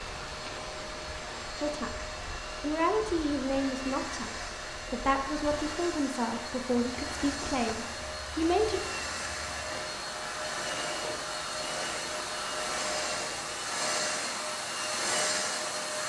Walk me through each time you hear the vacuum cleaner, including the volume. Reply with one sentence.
The vacuum cleaner can be heard from 0.0 to 16.0 s, getting louder.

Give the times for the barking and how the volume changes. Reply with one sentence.
The barking can't be heard in this clip.